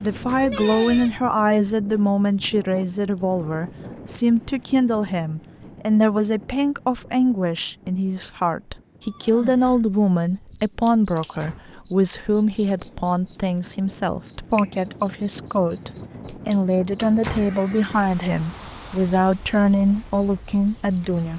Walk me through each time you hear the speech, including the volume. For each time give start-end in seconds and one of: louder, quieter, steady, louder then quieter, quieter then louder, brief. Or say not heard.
0.0-21.3 steady.